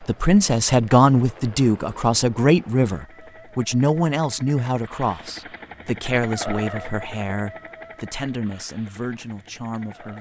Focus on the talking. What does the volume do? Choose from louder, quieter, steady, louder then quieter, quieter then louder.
quieter.